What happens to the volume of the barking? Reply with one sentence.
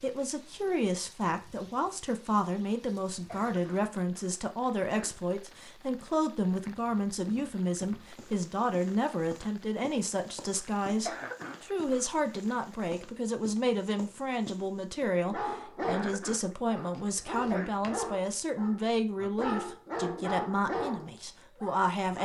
The volume of the barking goes down, then up.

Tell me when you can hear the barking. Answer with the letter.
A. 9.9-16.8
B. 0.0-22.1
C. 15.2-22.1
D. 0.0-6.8
C.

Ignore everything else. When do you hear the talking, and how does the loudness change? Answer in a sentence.
You can hear the talking from 0.0 to 22.1 s, at a steady volume.